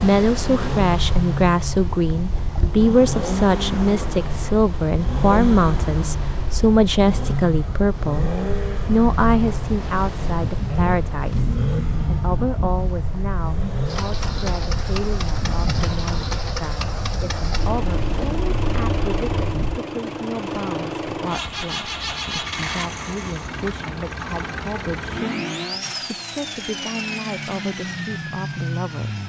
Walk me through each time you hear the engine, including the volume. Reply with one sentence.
The engine can be heard from 0.2 to 29.2 s, at a steady volume.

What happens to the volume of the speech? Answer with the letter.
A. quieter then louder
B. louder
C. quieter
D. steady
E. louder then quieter
C.